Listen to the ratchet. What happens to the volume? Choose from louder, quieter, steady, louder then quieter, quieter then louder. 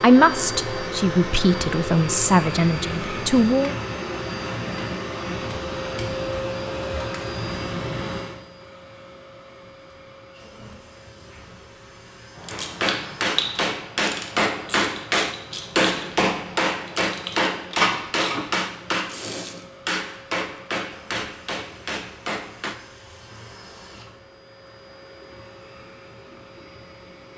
quieter then louder.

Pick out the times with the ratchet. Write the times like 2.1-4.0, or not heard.
12.3-18.4.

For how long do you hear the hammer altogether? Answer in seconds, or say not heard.
10 s.